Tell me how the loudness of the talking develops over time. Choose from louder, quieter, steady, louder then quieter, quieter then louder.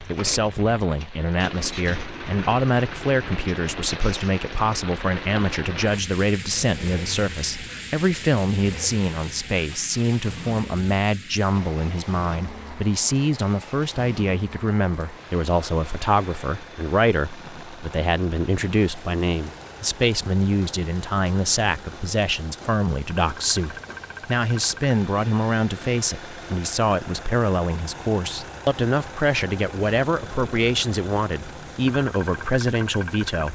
steady.